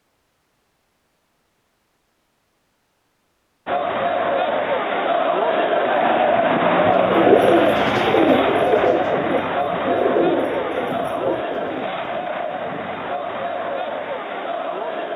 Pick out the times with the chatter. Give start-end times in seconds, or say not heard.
3.6-15.1.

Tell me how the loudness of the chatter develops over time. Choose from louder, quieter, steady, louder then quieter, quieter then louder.
quieter.